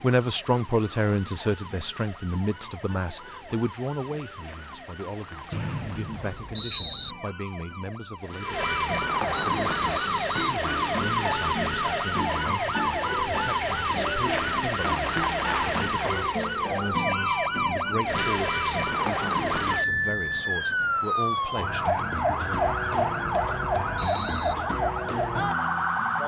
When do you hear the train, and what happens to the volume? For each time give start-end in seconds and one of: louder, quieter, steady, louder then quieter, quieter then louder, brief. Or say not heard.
not heard.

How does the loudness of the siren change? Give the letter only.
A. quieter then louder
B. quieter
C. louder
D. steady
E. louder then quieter
C.